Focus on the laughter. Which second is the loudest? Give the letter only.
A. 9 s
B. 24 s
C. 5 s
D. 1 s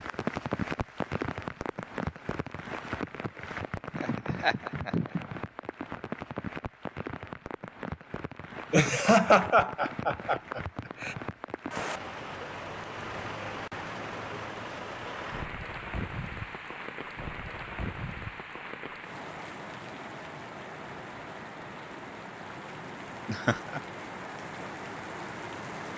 A.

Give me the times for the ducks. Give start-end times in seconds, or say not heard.
not heard.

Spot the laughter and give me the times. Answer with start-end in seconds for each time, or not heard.
3.9-5.4, 8.7-11.2, 23.2-23.8.